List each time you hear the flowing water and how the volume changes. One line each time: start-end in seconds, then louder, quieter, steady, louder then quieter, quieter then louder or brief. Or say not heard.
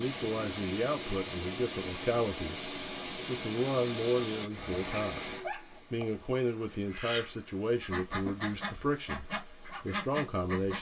0.0-10.7 quieter.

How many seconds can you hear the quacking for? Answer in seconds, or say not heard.
4 s.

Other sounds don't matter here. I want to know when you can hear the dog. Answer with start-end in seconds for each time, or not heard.
4.7-6.2.